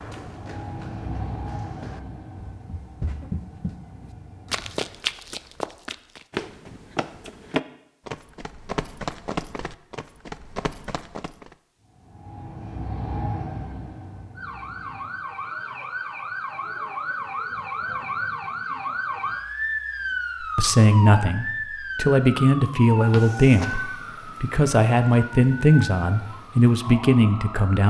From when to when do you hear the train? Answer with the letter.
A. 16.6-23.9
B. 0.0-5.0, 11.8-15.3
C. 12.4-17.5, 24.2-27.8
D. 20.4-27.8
B.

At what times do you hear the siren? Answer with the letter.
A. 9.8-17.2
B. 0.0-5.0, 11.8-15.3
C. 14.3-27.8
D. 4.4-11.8
C.